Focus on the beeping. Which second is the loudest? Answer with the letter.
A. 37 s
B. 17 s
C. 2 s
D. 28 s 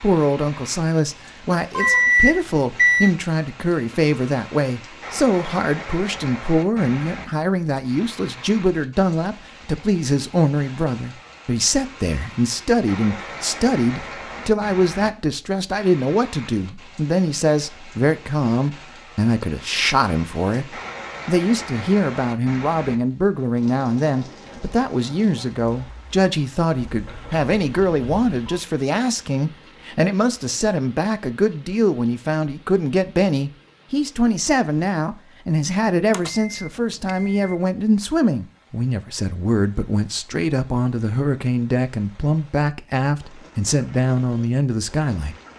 C.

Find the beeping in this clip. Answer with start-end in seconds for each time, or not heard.
1.8-3.1, 26.8-28.6, 36.1-37.5.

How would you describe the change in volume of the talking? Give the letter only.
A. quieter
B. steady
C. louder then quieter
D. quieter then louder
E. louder
B.